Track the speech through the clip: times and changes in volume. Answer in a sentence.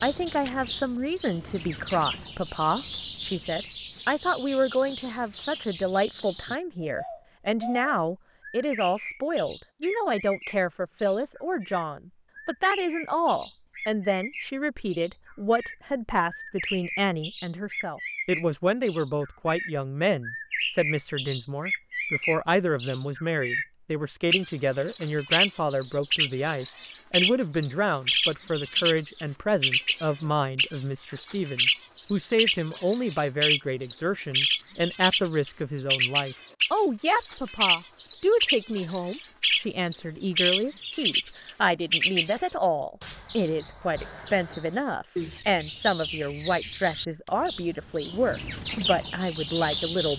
You can hear the speech from 0.0 to 50.1 s, at a steady volume.